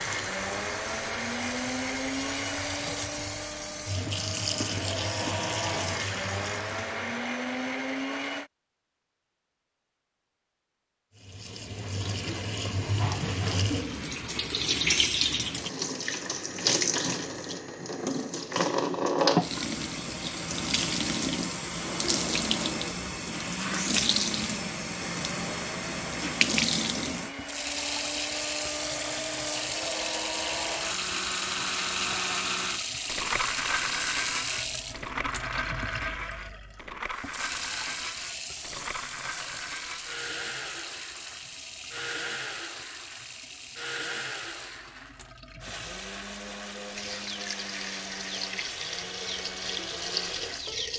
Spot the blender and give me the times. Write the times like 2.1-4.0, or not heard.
0.0-8.5, 21.8-50.8.